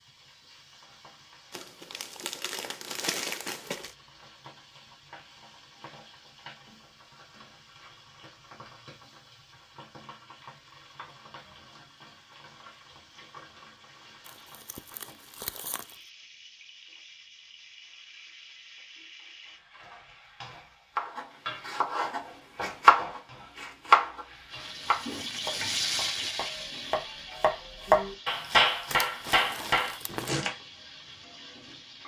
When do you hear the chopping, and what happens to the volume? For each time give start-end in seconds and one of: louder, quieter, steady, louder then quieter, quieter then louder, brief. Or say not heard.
20.9-30.6 quieter then louder.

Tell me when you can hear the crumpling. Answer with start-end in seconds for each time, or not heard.
1.5-4.0, 14.2-15.9, 28.9-30.4.